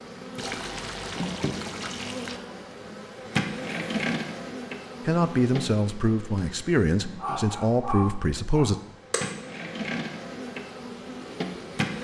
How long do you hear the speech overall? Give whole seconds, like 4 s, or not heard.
4 s.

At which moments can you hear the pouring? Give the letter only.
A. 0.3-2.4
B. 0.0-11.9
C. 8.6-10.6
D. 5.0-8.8
A.